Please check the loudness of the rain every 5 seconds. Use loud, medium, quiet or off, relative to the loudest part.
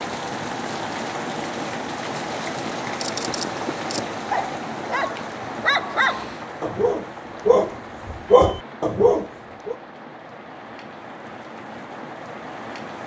loud, medium, medium.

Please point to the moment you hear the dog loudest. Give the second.
8 s.